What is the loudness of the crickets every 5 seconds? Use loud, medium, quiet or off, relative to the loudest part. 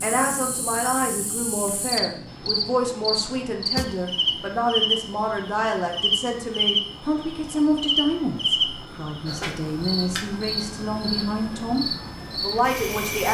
loud, loud, medium.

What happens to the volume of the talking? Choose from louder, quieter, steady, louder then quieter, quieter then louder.
steady.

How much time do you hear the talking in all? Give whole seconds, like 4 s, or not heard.
13 s.